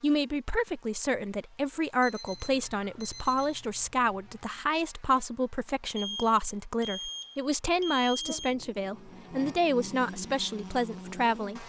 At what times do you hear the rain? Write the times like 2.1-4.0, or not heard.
not heard.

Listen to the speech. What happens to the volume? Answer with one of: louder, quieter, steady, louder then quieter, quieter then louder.
steady.